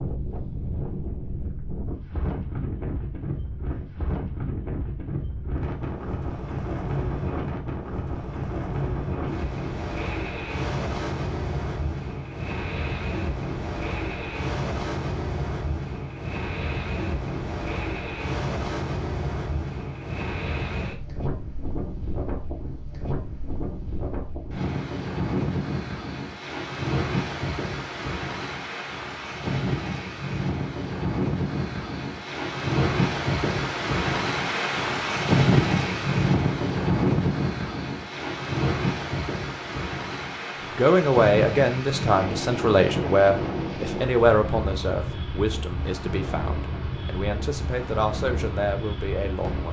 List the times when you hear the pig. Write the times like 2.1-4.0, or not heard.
not heard.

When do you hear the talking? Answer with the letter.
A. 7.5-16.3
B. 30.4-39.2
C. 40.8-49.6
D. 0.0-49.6
C.